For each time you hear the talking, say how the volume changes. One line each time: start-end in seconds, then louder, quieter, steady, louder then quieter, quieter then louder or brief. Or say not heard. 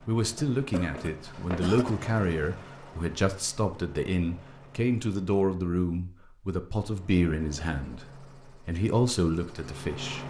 0.1-10.2 steady.